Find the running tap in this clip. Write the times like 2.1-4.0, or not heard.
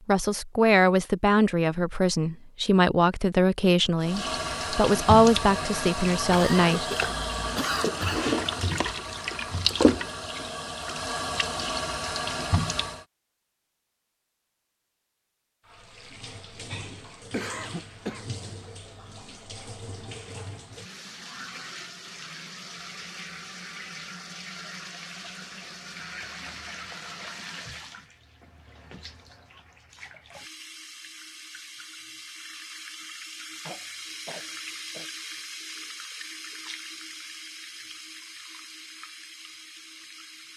4.0-13.1, 15.7-40.5.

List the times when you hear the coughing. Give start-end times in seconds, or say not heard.
6.3-8.3, 17.3-18.4, 33.6-35.1.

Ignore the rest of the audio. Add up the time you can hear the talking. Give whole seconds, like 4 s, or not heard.
7 s.